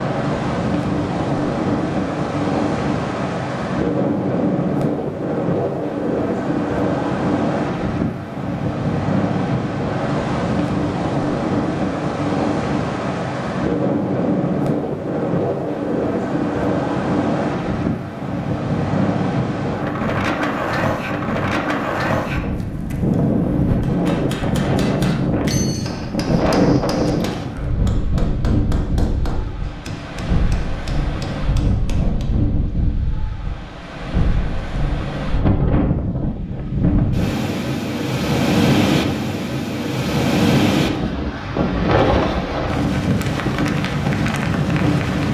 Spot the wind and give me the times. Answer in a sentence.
You can hear the wind from 0.0 to 45.2 s.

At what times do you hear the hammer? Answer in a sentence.
You can hear the hammer from 23.8 to 32.4 s.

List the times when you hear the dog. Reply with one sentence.
You can't hear the dog here.